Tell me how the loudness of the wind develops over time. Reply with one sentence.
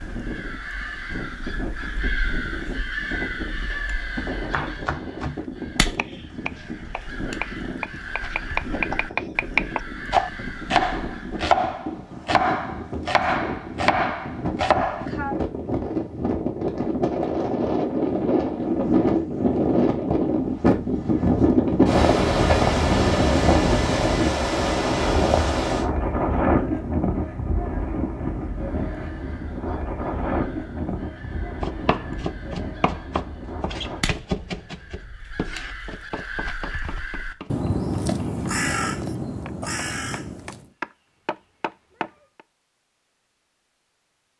The loudness of the wind goes up, then down.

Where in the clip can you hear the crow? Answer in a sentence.
You can hear the crow from 0.0 to 11.6 s and from 28.5 to 40.7 s.